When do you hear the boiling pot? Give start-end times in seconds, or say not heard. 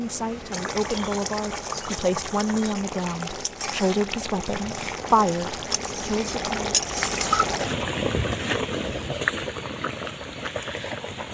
0.0-11.2.